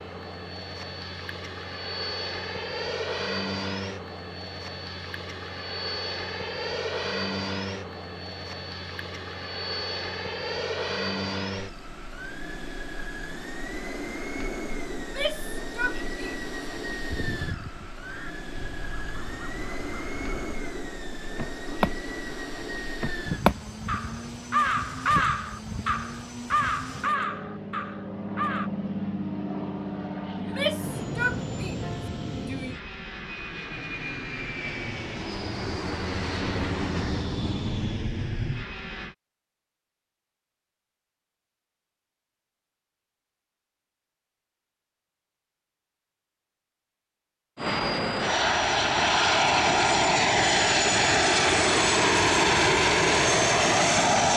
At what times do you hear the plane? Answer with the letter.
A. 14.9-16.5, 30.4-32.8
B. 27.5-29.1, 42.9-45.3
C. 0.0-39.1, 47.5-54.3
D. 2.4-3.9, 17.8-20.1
C.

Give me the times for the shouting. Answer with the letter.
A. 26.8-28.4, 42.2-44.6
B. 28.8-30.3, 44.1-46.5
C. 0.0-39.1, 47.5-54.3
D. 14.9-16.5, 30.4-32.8
D.